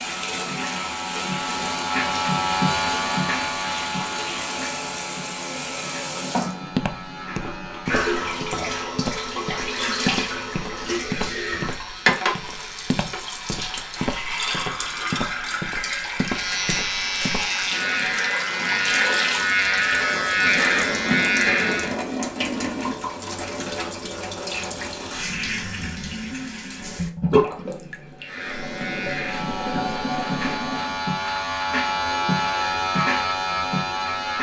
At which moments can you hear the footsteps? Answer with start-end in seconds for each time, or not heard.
6.8-17.5.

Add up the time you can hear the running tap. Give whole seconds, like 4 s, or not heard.
31 s.